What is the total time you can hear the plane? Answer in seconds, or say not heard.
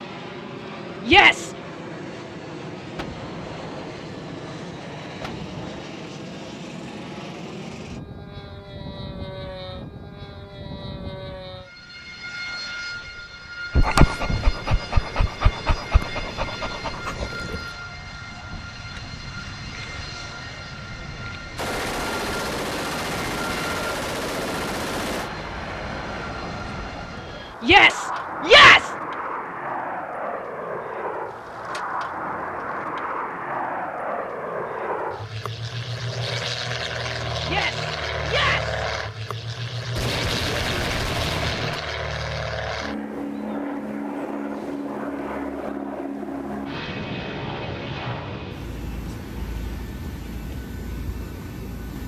52 s.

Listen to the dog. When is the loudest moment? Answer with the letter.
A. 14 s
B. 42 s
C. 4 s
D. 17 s
A.